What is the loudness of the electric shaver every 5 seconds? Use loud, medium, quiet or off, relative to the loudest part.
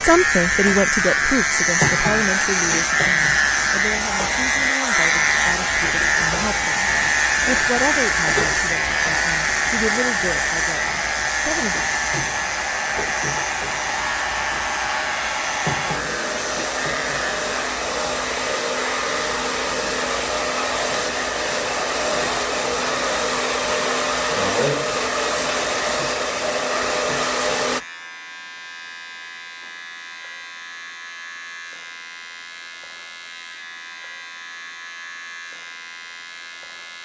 loud, loud, medium, medium, quiet, quiet, quiet, quiet.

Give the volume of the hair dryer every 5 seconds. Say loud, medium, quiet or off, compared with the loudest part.
medium, medium, medium, loud, loud, loud, off, off.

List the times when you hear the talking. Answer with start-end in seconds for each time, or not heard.
0.0-11.8.